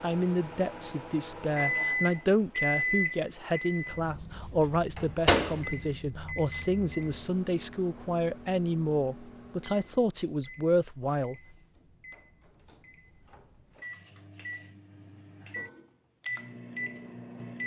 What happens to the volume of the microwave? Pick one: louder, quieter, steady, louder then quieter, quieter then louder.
quieter then louder.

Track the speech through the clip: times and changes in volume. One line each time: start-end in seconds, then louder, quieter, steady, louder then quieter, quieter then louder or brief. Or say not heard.
0.0-11.4 steady.